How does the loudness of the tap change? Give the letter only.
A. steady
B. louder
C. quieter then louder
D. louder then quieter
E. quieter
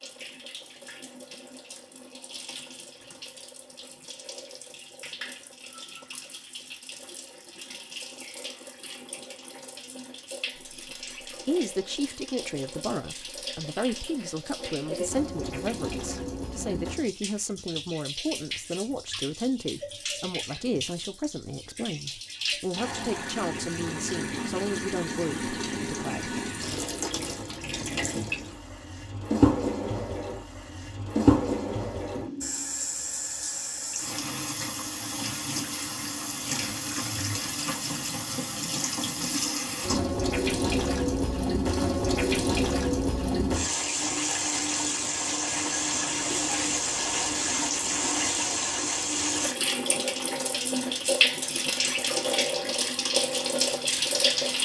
B.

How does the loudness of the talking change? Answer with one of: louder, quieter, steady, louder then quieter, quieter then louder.
steady.